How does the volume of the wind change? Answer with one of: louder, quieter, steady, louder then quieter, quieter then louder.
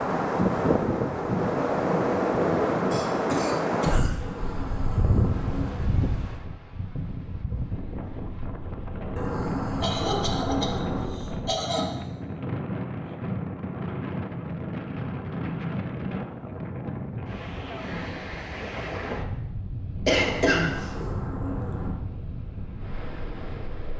quieter.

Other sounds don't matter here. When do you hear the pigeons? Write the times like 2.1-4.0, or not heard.
4.2-5.9, 9.2-11.2, 20.1-21.9.